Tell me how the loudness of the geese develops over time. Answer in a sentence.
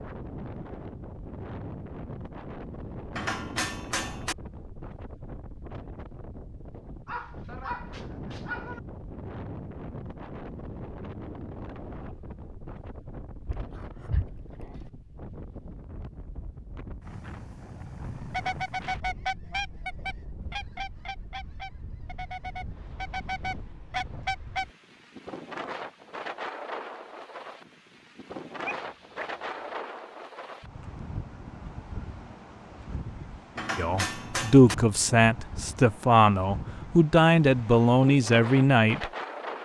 The loudness of the geese goes down, then up.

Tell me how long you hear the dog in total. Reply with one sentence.
You can hear the dog for 4 seconds altogether.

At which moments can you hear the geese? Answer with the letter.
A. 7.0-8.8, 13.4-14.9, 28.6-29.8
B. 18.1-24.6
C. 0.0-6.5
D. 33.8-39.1
B.